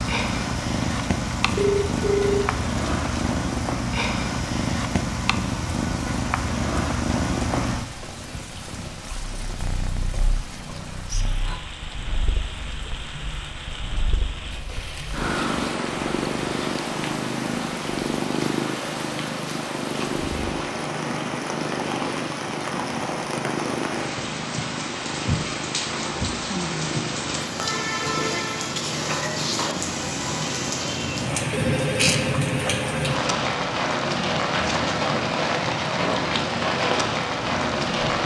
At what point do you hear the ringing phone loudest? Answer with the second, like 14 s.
2 s.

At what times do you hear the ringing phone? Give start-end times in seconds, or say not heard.
1.6-2.5, 31.5-33.0.